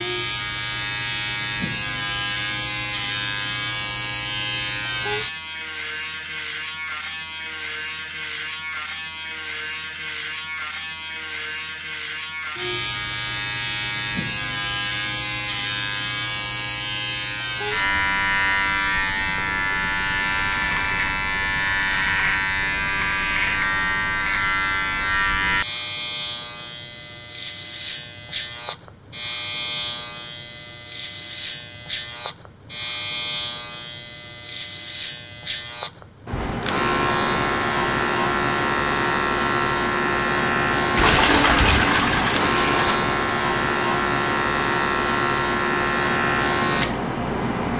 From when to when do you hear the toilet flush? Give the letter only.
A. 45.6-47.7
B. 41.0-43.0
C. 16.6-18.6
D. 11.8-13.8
B.